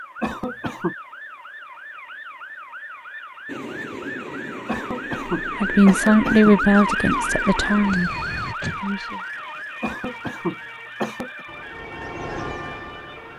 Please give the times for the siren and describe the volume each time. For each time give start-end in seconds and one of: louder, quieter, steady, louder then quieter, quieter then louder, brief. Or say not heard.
0.0-13.3 louder then quieter.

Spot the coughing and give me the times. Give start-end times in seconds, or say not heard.
0.2-0.9, 4.7-6.5, 9.8-11.4.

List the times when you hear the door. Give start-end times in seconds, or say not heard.
7.9-8.8.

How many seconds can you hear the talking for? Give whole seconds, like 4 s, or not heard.
4 s.